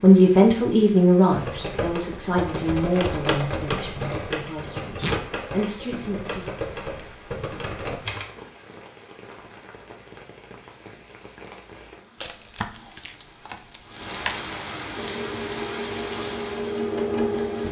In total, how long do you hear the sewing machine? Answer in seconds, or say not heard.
3 s.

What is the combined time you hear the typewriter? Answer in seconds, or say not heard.
7 s.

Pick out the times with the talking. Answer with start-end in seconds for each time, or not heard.
0.0-6.5.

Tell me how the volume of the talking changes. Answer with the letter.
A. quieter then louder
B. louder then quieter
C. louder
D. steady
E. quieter
A.